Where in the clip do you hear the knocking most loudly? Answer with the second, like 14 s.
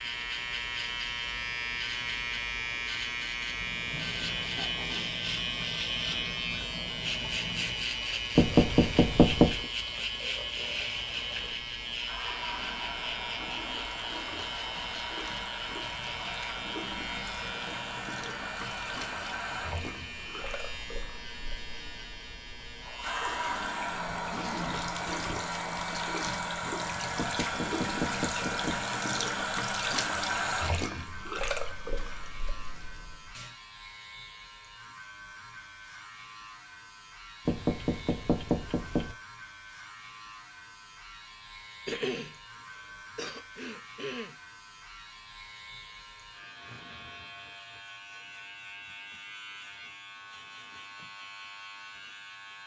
9 s.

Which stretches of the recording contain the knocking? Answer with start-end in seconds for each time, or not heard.
8.3-9.7, 27.1-28.9, 37.5-39.1.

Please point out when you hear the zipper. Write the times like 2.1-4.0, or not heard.
not heard.